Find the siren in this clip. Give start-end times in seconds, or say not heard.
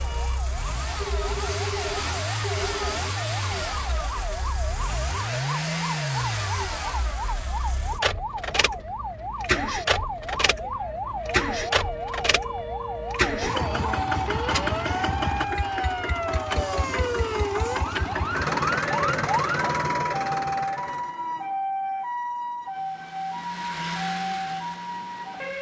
0.0-25.5.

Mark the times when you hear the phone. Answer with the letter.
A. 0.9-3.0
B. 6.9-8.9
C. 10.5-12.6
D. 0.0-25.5
A.